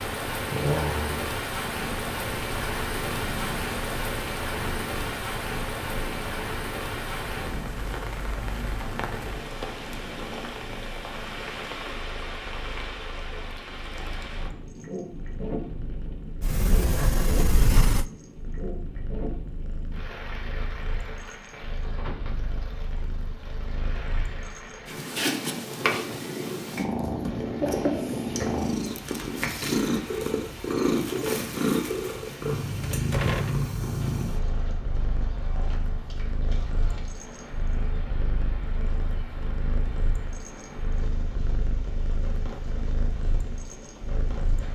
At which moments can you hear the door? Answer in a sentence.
You can hear the door from 16.4 to 18.1 s and from 32.8 to 33.6 s.